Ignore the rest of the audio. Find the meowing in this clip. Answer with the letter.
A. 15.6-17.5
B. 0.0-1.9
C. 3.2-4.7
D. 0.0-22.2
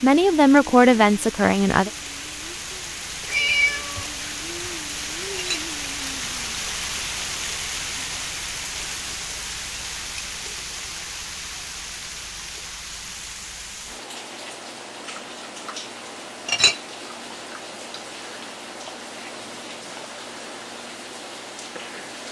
C.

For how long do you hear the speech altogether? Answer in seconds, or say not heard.
2 s.